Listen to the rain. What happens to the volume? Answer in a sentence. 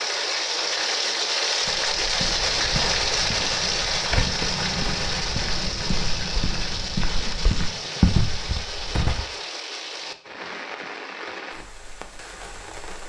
The volume of the rain goes down.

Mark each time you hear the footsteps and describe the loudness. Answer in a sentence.
You can hear the footsteps from 1.6 to 9.2 s, getting louder.